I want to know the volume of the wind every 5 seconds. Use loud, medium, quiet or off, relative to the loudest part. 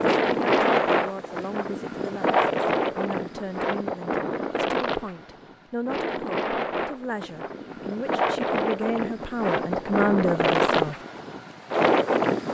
loud, medium, loud.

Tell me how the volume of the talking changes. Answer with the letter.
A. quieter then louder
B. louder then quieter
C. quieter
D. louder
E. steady
D.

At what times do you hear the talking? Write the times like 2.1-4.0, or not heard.
0.2-10.9.